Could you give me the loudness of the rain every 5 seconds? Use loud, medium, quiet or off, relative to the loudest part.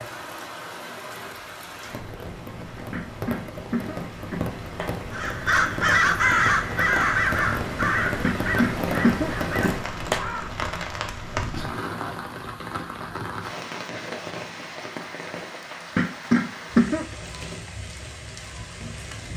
medium, loud, loud, medium.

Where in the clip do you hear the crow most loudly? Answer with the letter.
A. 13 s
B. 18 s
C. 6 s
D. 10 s
C.